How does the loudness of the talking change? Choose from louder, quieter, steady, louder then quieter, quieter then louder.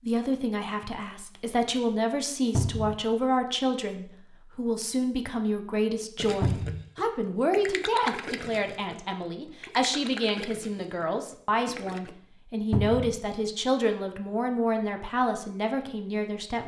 steady.